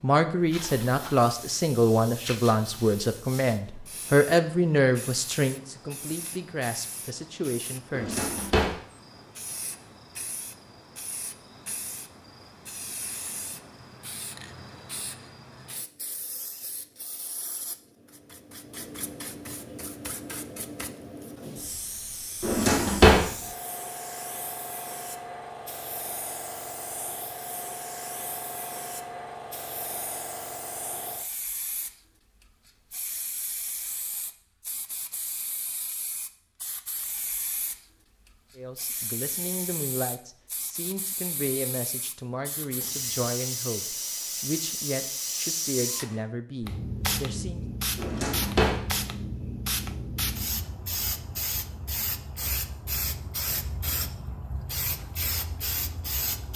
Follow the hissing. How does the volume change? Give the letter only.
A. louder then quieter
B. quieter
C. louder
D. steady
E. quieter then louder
C.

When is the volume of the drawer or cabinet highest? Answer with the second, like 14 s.
23 s.